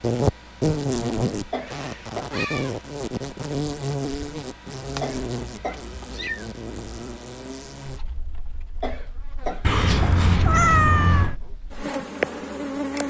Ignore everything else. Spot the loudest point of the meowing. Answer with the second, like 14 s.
11 s.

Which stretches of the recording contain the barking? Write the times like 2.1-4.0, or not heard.
not heard.